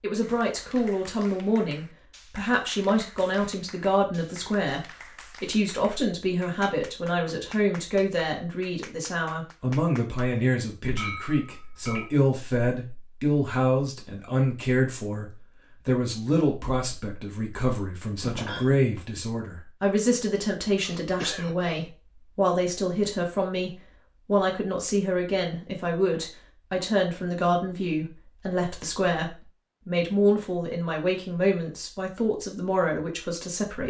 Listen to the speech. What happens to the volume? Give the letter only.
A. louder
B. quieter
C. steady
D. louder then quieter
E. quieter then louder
C.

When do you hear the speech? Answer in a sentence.
You can hear the speech from 0.0 to 33.8 s.